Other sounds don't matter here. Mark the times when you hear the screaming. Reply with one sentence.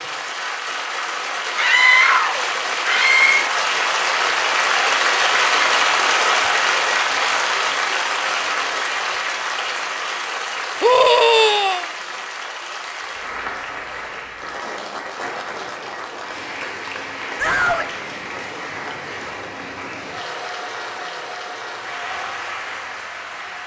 You can hear the screaming from 1.6 to 3.5 s, from 10.8 to 11.8 s and from 17.4 to 17.9 s.